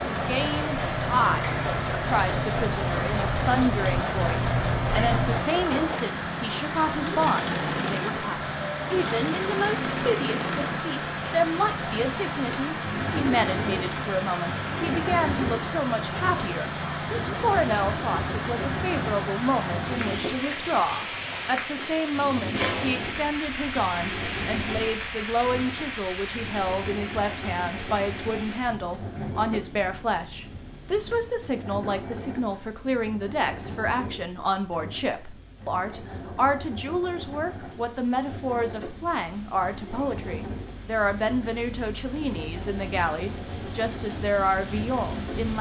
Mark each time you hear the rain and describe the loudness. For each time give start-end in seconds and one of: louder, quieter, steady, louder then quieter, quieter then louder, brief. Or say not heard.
0.0-45.5 quieter.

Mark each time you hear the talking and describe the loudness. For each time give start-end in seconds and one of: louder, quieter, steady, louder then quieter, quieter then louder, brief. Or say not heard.
0.1-45.5 steady.